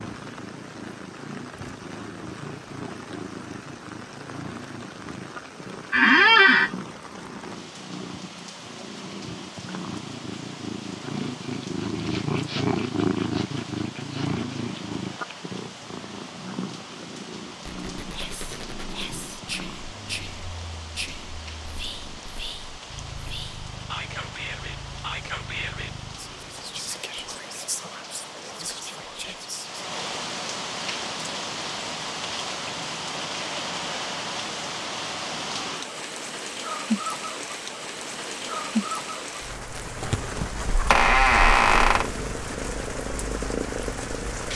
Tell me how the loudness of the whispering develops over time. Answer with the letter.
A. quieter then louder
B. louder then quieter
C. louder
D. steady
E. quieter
D.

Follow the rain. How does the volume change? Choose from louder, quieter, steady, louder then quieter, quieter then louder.
louder.